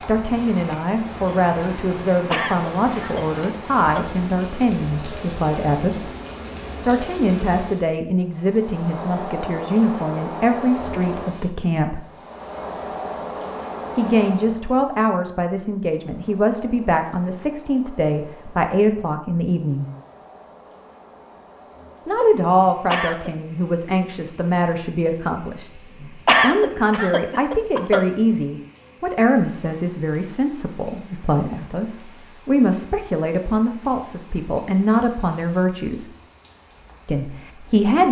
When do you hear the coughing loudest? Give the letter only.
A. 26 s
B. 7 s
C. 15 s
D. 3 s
A.